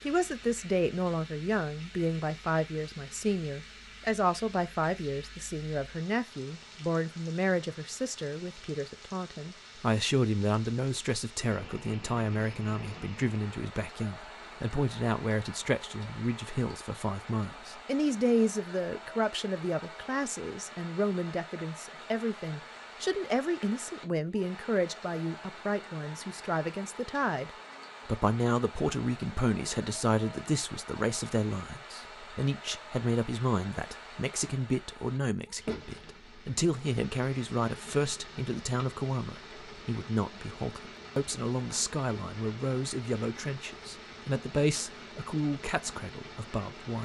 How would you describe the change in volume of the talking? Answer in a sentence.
The loudness of the talking stays about the same.